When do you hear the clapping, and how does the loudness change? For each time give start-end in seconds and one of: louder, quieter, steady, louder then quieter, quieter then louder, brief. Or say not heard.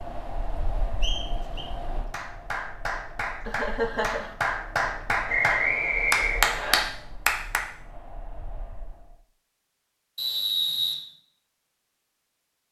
2.0-7.6 louder.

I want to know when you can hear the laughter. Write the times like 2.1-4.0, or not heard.
3.5-4.3.